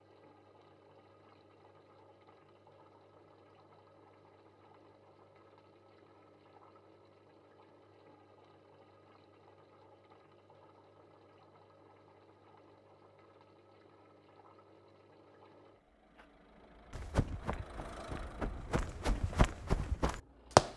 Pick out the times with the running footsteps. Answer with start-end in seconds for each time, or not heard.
16.9-20.7.